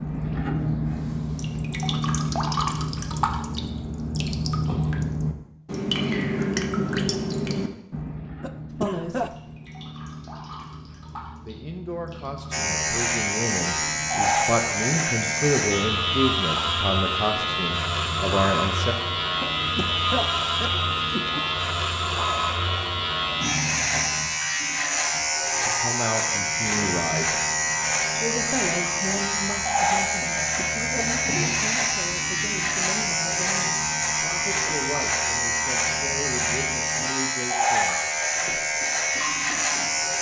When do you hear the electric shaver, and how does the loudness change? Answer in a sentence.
The electric shaver can be heard from 12.5 to 40.1 s, at a steady volume.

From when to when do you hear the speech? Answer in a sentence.
You can hear the speech from 8.7 to 9.3 s, from 11.4 to 18.9 s, from 25.1 to 27.4 s and from 28.2 to 38.0 s.